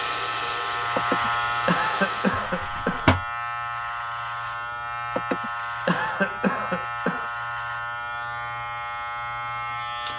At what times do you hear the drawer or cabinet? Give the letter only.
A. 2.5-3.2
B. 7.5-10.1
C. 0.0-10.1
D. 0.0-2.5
A.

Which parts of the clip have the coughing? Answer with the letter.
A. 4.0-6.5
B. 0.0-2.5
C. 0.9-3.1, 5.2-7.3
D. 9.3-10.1
C.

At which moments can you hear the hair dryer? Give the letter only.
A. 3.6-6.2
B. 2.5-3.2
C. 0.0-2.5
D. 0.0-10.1
C.